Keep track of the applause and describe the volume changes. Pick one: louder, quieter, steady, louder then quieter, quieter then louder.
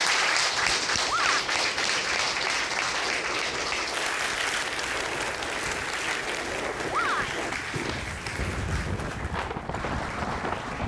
quieter.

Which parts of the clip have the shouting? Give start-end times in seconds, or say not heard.
1.1-1.5, 6.9-7.5.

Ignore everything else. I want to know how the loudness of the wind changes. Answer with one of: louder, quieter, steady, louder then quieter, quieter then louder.
louder.